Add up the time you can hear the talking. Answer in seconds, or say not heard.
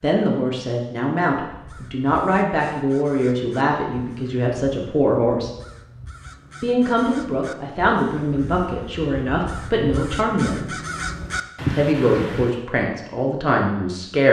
12 s.